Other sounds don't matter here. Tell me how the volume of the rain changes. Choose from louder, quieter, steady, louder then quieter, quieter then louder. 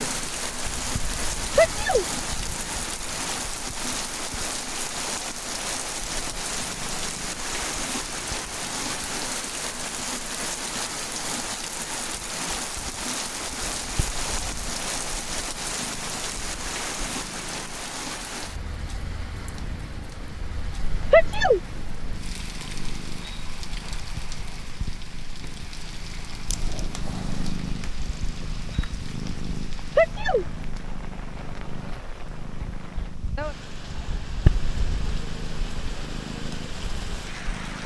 quieter.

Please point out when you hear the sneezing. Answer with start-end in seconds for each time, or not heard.
1.6-2.0, 21.1-21.6, 29.9-30.4.